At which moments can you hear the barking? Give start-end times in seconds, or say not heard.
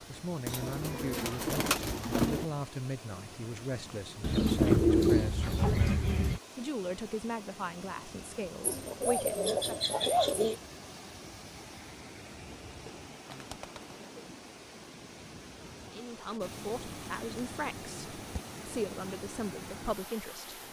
not heard.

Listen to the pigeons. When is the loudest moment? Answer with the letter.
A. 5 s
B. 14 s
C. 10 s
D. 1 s
A.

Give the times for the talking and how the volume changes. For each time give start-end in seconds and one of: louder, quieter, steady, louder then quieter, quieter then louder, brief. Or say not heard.
0.0-9.7 steady
15.8-20.5 quieter then louder.